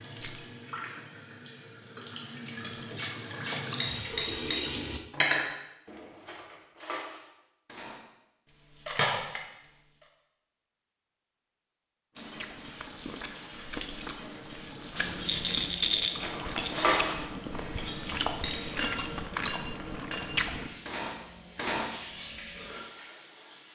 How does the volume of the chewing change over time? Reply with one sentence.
The volume of the chewing goes up.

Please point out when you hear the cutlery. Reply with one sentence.
The cutlery can be heard from 2.6 to 9.7 s and from 15.2 to 22.4 s.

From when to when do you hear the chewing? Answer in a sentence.
The chewing can be heard from 12.2 to 20.7 s.